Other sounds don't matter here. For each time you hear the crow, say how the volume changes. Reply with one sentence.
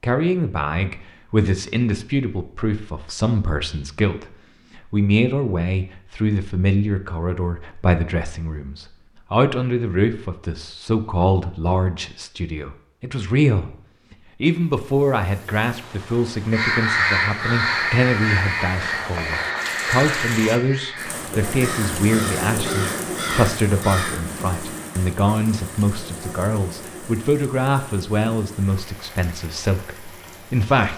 The crow can be heard from 16.5 to 24.2 s, getting quieter.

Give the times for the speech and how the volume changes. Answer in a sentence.
The speech can be heard from 0.0 to 13.7 s, at a steady volume; and from 14.4 to 30.9 s, at a steady volume.